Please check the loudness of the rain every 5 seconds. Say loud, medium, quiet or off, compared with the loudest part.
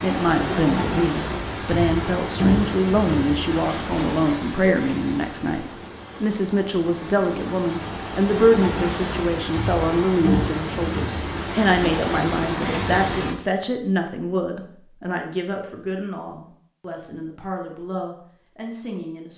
loud, medium, loud, off.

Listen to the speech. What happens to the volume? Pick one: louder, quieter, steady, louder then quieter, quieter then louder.
quieter.